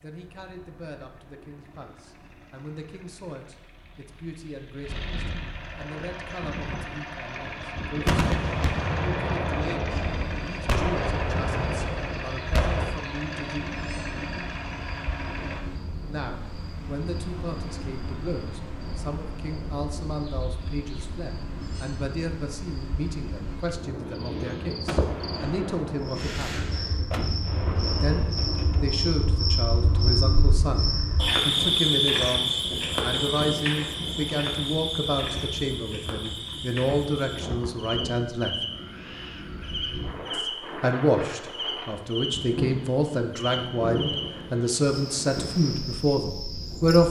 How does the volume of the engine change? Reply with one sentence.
The volume of the engine goes up.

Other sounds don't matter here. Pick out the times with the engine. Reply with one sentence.
The engine can be heard from 0.0 to 15.7 s.